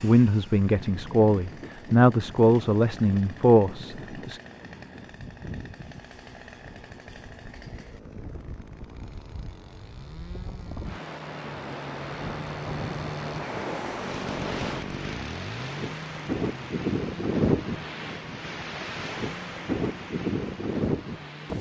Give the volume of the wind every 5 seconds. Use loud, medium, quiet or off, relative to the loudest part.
quiet, quiet, medium, loud, loud.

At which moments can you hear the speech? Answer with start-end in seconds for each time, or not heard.
0.0-4.4.